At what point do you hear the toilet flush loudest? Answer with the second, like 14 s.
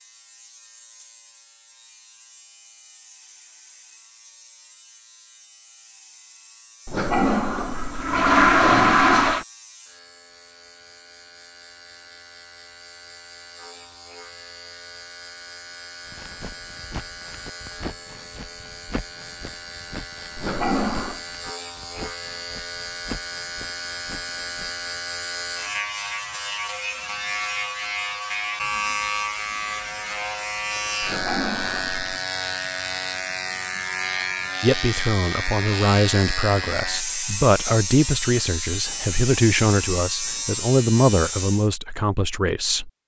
9 s.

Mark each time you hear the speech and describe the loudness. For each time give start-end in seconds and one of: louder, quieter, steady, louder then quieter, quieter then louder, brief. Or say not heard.
34.6-42.9 steady.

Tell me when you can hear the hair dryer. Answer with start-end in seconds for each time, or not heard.
not heard.